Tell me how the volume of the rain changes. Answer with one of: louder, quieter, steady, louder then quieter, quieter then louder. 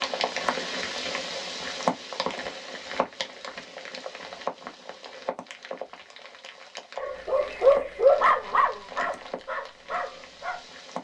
quieter.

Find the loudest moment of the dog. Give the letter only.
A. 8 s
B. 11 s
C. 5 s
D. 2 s
A.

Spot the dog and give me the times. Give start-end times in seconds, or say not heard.
7.0-10.6.